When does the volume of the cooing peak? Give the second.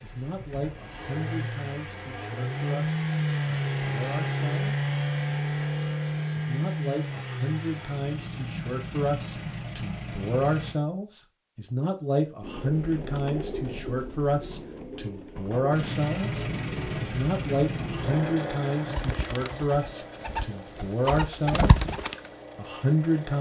22 s.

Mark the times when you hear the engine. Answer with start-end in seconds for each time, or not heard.
0.0-10.8, 15.7-23.3.